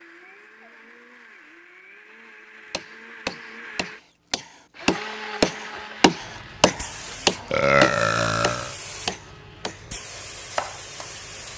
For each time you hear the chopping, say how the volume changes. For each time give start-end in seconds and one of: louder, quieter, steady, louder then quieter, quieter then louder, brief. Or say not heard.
2.7-9.9 louder then quieter
10.5-11.5 brief.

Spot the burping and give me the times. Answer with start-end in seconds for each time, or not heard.
7.5-8.8.